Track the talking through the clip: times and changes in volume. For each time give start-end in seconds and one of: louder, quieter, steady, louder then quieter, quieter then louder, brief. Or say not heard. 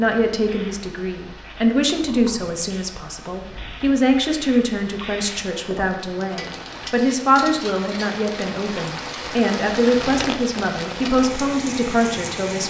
0.0-12.6 steady.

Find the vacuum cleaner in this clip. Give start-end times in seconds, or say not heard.
not heard.